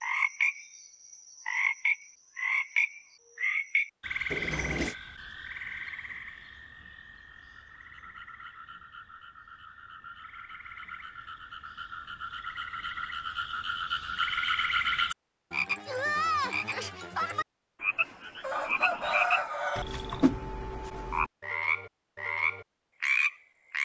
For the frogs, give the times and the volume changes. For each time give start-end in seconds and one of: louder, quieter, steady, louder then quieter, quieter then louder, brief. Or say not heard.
0.0-23.8 quieter then louder.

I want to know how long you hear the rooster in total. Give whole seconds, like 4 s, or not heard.
2 s.